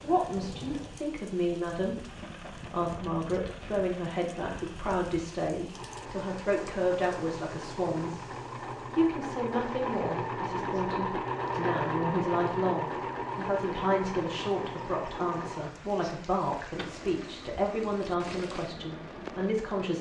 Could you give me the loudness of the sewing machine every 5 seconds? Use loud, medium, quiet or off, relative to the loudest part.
quiet, medium, loud, medium.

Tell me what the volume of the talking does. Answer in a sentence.
The volume of the talking stays about the same.